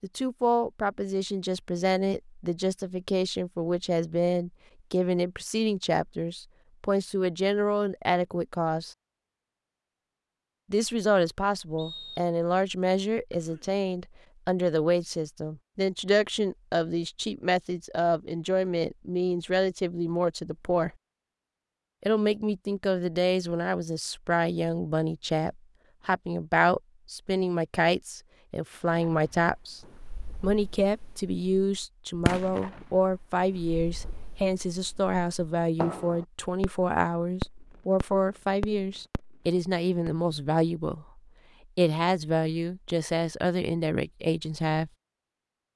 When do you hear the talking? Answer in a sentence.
You can hear the talking from 0.0 to 8.9 s, from 10.7 to 20.9 s, from 22.0 to 29.8 s and from 30.4 to 44.9 s.